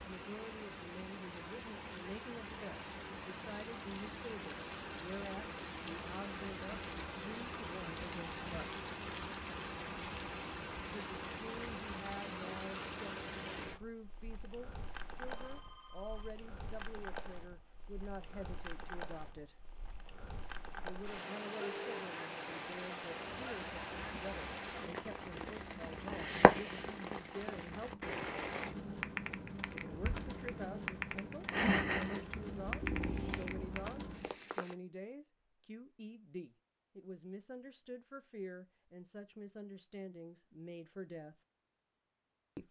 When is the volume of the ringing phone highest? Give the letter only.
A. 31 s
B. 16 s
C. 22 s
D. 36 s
C.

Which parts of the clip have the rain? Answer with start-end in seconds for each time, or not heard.
0.0-34.8.